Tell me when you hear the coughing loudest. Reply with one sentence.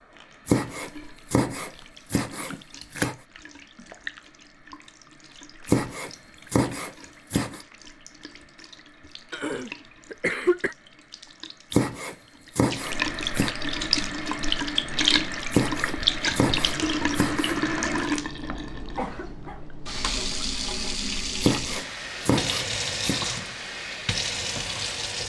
The volume of the coughing peaks at 10 seconds.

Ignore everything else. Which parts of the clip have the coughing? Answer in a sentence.
The coughing can be heard from 9.3 to 10.8 s and from 18.4 to 19.6 s.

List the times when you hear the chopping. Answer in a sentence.
You can hear the chopping from 0.5 to 3.1 s, from 5.7 to 7.6 s, from 11.7 to 13.6 s, from 15.5 to 17.6 s and from 21.4 to 23.2 s.